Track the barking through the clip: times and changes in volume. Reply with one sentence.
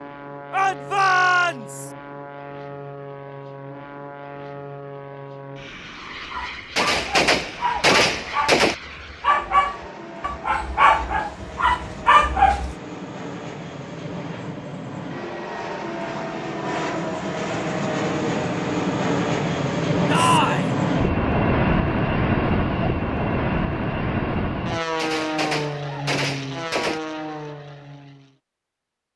You can hear the barking from 6.2 to 12.8 s, getting louder.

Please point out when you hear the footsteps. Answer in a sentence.
You can't hear the footsteps here.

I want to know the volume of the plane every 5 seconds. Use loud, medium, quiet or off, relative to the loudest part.
quiet, quiet, quiet, loud, loud, medium.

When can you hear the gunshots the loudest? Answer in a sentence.
The loudest moment of the gunshots is at 8 seconds.